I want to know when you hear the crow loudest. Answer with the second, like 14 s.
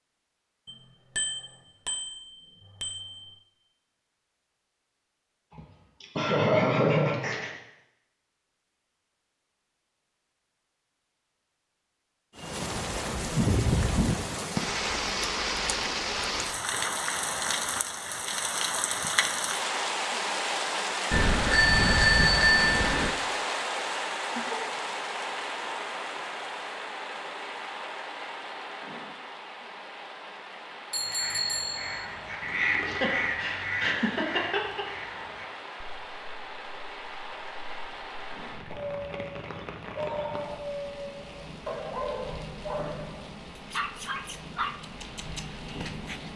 33 s.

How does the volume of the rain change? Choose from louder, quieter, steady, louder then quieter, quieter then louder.
quieter.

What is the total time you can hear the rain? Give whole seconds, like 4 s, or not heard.
34 s.